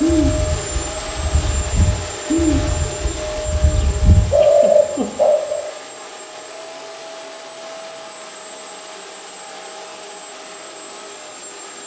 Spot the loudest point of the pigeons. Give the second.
5 s.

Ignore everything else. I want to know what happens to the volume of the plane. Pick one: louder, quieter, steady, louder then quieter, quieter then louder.
quieter.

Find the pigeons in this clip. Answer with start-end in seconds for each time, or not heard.
0.0-5.7.